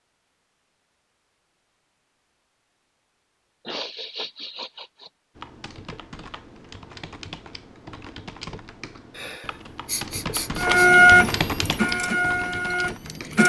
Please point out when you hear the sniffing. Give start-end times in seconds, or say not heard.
3.6-5.1, 9.2-10.9.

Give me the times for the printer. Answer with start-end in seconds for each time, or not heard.
10.6-13.4.